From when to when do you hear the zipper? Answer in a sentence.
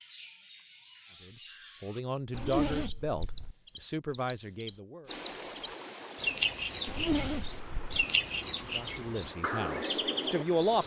The zipper can be heard from 2.3 to 3.5 s and from 6.8 to 8.0 s.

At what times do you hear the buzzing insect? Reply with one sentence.
The buzzing insect can't be heard in this clip.